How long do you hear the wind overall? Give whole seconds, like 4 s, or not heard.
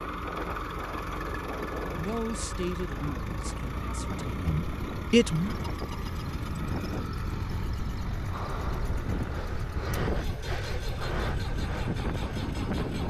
13 s.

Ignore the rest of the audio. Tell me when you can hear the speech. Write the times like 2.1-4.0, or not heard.
1.9-5.5.